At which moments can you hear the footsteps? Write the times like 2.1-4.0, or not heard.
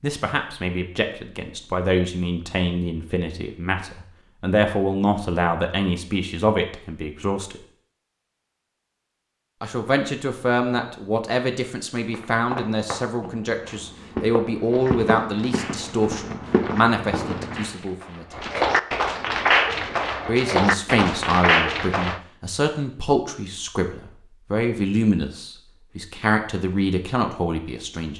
12.1-17.6.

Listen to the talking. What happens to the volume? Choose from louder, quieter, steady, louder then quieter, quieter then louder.
steady.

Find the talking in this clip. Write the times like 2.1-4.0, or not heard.
0.0-7.6, 9.6-18.6, 20.2-28.1.